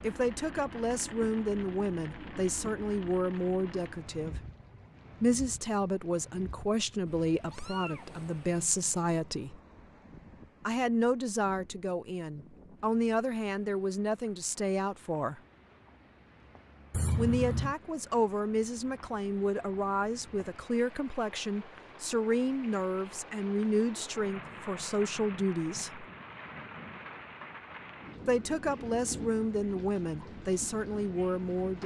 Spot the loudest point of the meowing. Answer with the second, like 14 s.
17 s.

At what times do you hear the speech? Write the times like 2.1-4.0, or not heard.
0.0-4.4, 5.2-9.6, 10.7-15.4, 17.1-26.1, 28.2-31.8.